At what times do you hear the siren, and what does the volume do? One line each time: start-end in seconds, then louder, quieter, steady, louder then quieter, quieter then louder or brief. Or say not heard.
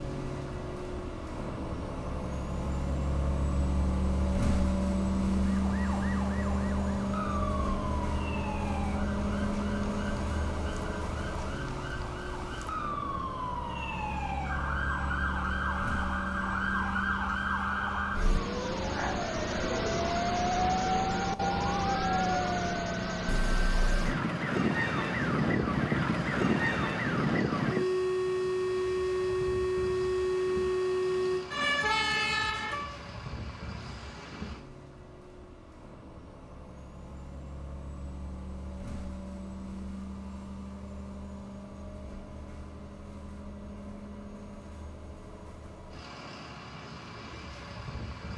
5.6-33.0 louder.